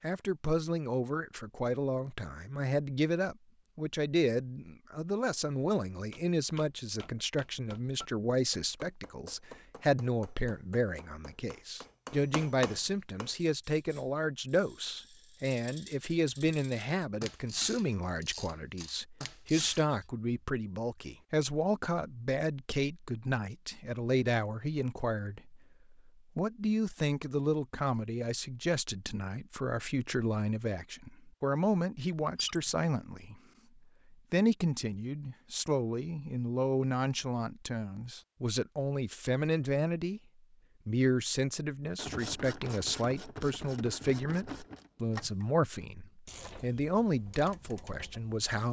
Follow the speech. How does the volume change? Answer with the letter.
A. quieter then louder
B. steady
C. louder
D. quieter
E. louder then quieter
B.